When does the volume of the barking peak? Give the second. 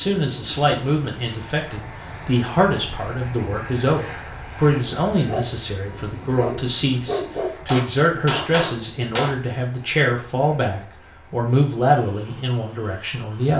7 s.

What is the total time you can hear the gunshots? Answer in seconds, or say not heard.
2 s.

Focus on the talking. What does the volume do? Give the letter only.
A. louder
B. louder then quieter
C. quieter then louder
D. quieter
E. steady
E.